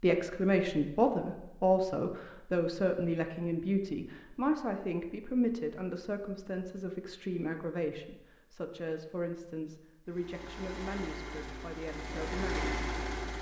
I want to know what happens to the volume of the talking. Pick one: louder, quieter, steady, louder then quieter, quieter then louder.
quieter.